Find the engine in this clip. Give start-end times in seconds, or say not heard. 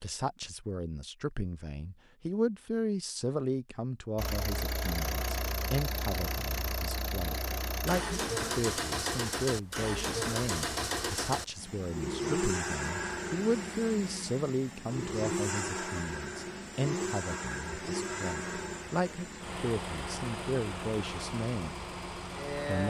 4.2-22.8.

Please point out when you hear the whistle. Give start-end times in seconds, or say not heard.
not heard.